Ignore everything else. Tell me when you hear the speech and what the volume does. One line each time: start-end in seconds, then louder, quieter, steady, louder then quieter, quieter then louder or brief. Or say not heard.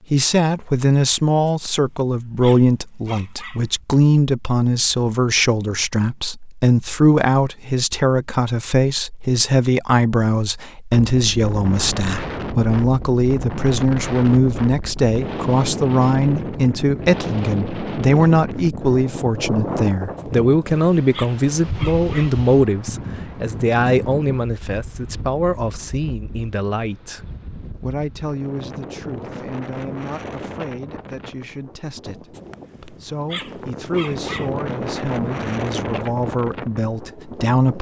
0.1-37.7 quieter.